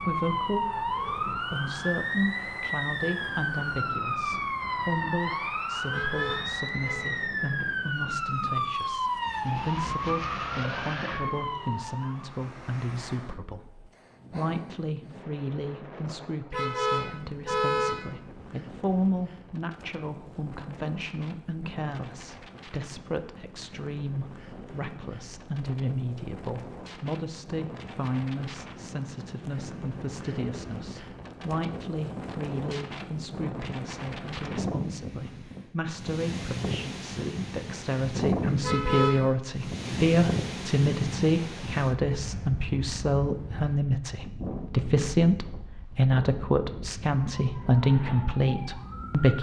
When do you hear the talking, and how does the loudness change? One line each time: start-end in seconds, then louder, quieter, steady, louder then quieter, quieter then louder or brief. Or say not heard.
0.0-49.3 louder.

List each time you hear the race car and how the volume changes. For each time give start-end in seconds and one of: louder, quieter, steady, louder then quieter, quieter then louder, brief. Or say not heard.
not heard.